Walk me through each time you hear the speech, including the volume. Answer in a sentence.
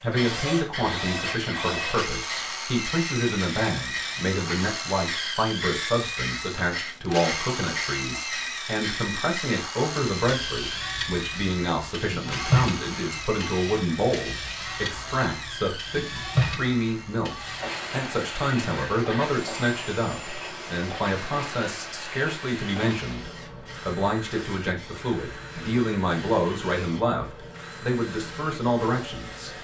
The speech can be heard from 0.0 to 29.5 s, at a steady volume.